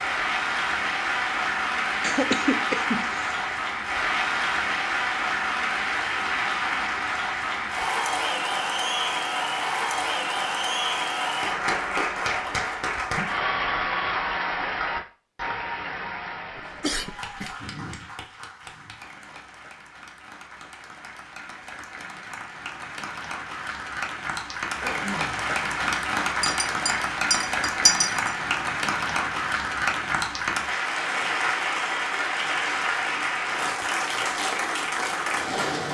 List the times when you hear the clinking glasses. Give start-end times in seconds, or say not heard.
26.4-28.4.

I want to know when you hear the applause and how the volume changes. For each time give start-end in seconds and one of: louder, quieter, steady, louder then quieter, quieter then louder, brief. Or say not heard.
0.0-35.9 quieter then louder.